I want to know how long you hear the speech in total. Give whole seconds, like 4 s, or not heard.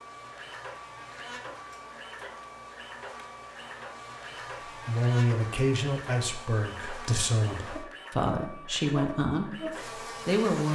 6 s.